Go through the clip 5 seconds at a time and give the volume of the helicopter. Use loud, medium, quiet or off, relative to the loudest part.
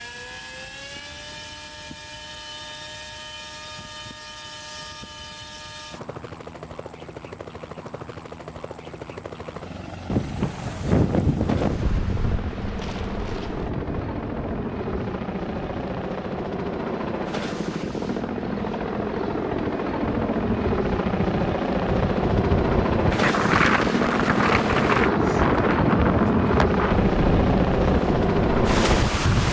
quiet, quiet, medium, medium, loud, loud.